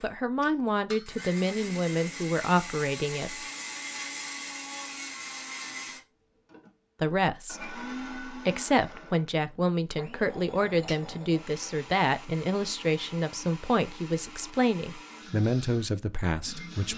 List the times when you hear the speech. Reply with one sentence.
The speech can be heard from 0.0 to 3.4 s and from 7.0 to 16.9 s.